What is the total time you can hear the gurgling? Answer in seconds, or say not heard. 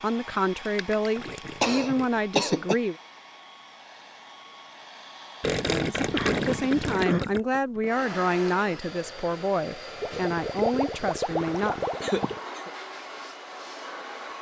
6 s.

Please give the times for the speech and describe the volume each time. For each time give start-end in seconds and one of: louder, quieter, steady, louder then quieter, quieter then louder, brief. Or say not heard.
0.0-3.0 brief
5.7-11.8 steady.